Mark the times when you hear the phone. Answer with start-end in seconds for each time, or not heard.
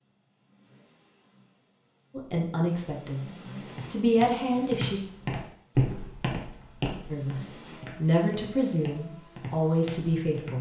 not heard.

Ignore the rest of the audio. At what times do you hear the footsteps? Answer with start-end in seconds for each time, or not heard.
3.6-10.5.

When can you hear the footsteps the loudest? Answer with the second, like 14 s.
6 s.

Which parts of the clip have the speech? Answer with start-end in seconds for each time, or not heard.
2.1-3.3, 3.9-5.0, 7.1-10.5.